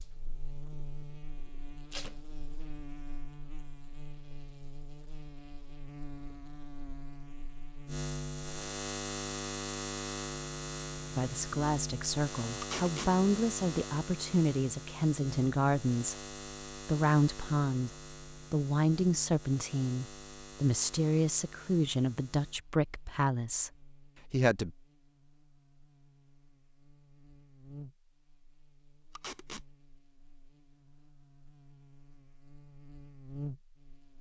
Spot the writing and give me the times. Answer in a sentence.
You can't hear the writing here.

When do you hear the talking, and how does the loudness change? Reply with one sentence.
The talking can be heard from 11.2 to 24.7 s, at a steady volume.